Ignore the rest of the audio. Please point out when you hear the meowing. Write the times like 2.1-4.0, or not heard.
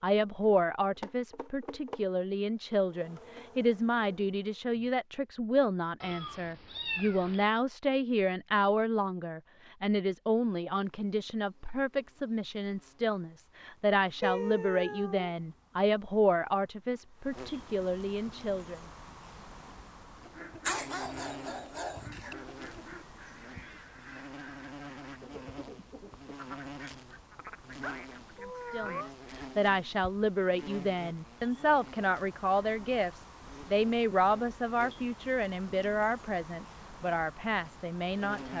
6.0-7.5, 14.2-15.3, 27.8-29.1.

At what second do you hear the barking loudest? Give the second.
21 s.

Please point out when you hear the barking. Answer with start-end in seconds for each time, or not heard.
20.6-22.4.